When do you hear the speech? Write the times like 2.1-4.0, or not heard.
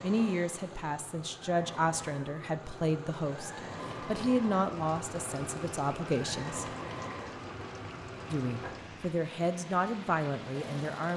0.0-6.7, 8.3-11.1.